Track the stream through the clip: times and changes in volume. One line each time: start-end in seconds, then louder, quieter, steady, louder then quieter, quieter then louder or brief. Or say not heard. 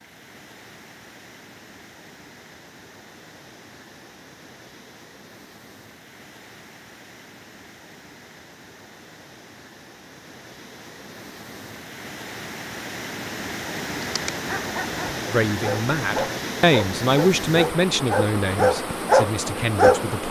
0.0-20.2 louder.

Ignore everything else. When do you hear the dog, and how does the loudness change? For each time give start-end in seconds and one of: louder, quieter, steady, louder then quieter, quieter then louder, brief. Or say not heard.
14.1-20.1 louder.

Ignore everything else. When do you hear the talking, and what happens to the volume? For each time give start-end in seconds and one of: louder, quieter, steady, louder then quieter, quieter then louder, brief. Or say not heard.
15.2-20.2 louder then quieter.